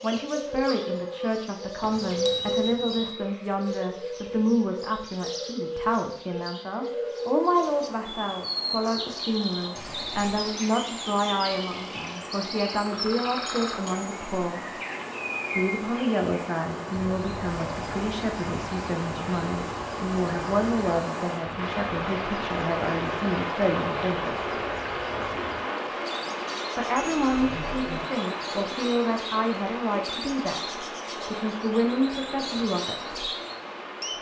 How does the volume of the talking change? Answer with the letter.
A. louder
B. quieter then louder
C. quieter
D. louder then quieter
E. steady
E.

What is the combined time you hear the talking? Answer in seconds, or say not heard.
30 s.